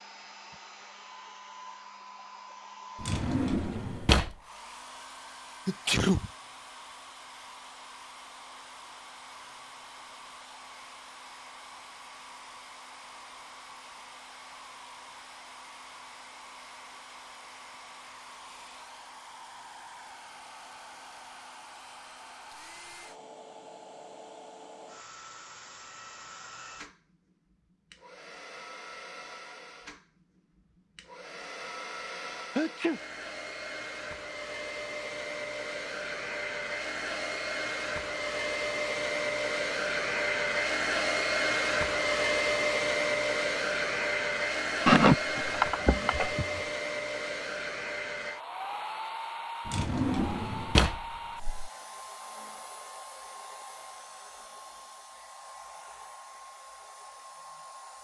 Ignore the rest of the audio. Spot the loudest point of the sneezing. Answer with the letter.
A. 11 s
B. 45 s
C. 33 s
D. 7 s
B.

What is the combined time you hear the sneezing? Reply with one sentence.
You can hear the sneezing for 3 seconds altogether.